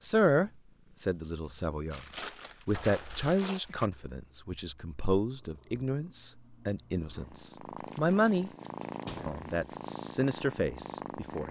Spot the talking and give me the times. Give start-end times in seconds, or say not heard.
0.0-2.0, 2.6-8.5, 9.2-11.4.